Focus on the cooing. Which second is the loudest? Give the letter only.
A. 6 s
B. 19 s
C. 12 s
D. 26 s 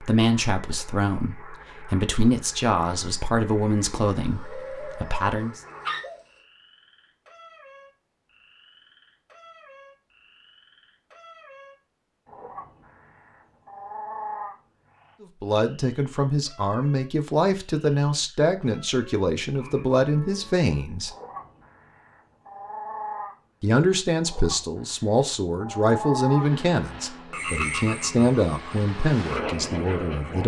A.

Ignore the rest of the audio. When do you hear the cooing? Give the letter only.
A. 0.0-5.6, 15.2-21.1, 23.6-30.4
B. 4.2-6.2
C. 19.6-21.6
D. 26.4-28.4
B.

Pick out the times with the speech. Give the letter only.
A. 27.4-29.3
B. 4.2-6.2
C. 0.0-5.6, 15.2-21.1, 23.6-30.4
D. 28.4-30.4
C.